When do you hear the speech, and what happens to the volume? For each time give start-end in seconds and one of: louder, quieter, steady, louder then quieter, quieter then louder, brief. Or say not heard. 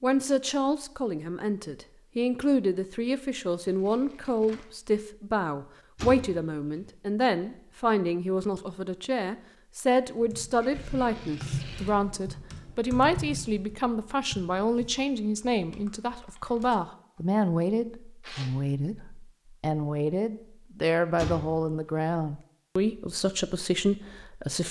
0.0-24.6 steady.